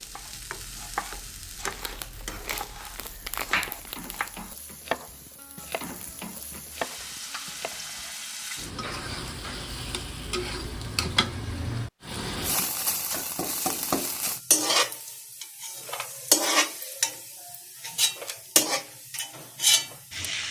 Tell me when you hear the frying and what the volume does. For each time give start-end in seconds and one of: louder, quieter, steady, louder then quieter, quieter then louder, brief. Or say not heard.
0.0-20.4 louder.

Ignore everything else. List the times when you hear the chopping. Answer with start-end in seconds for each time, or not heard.
0.0-8.4.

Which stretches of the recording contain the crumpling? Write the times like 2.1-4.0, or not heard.
1.7-4.3.